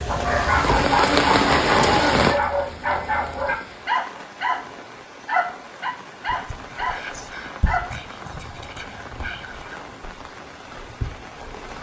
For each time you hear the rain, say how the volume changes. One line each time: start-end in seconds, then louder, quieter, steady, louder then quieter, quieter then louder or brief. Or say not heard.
0.0-11.7 quieter.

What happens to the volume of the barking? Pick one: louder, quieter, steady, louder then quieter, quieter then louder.
quieter.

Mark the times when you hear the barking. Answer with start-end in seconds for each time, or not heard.
0.1-8.0.